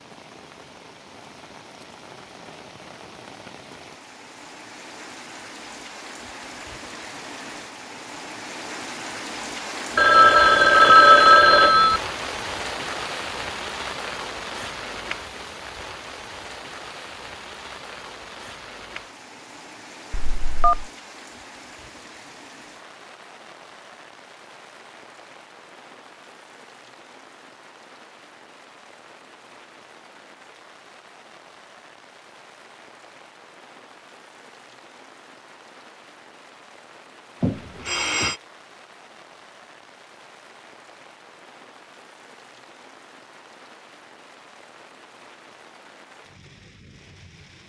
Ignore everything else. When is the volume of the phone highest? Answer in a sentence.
The volume of the phone peaks at 11 seconds.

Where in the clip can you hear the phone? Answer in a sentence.
You can hear the phone from 9.9 to 12.0 s, from 20.1 to 20.9 s and from 37.4 to 38.4 s.